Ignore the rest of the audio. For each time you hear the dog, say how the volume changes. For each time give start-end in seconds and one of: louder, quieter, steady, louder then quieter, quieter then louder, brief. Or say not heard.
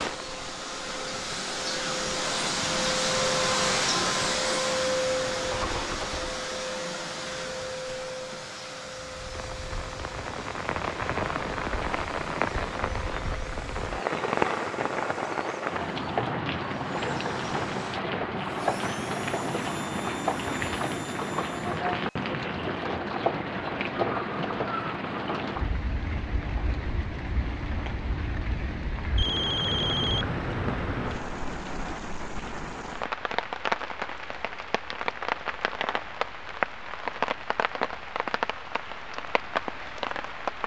not heard.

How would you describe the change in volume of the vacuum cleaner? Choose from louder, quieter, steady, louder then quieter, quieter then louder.
quieter.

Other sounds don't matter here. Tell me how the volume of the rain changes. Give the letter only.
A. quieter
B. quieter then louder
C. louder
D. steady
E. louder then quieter
D.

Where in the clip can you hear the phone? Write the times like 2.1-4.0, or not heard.
29.1-30.3.